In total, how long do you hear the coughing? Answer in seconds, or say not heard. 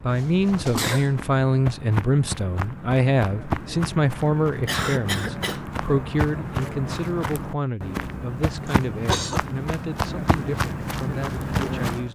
3 s.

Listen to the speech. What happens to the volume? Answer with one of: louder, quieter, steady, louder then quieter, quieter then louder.
quieter.